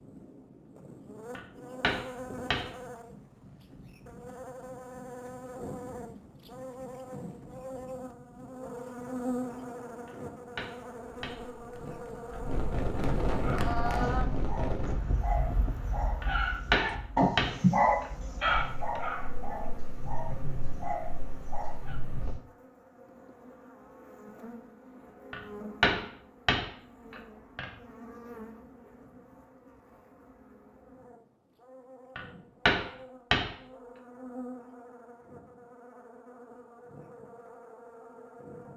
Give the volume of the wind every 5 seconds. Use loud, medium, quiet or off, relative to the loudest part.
quiet, quiet, loud, medium, medium, off, off, off.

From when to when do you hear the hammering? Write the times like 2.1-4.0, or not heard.
1.4-2.8, 10.1-12.3, 16.2-19.0, 25.3-27.7, 32.1-33.5.